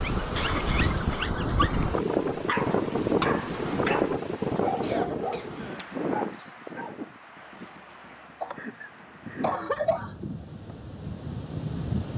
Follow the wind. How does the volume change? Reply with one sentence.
The volume of the wind goes down, then up.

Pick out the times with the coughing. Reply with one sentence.
The coughing can be heard from 0.3 to 1.4 s, from 4.8 to 5.8 s and from 8.4 to 10.2 s.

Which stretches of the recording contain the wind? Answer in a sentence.
The wind can be heard from 0.0 to 12.1 s.